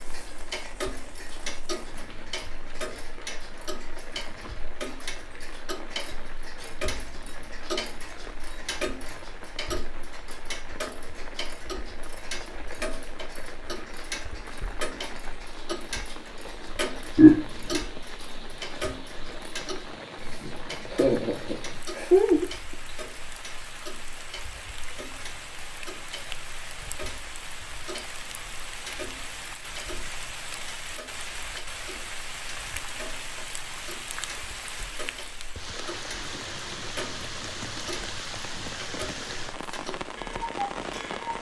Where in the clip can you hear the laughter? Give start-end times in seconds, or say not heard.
17.1-17.8, 20.9-22.4.